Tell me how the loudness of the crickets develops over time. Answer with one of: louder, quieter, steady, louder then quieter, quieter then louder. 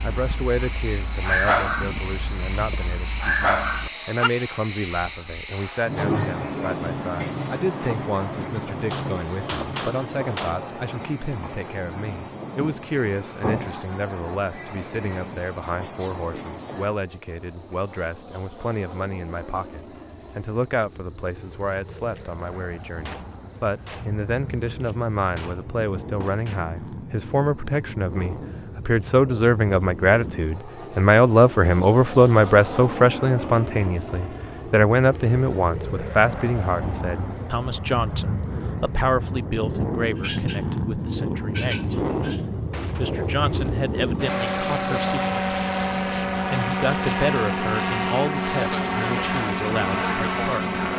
quieter.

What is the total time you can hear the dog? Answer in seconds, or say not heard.
4 s.